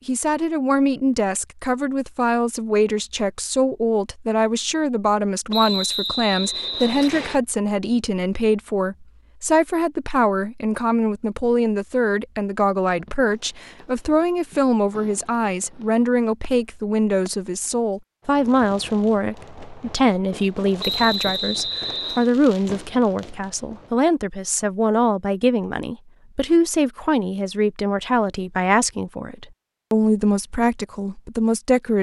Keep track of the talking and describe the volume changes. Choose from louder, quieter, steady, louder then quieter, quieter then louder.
steady.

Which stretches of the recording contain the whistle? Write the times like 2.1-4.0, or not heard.
5.5-7.4, 20.8-22.3.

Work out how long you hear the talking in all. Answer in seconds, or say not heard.
32 s.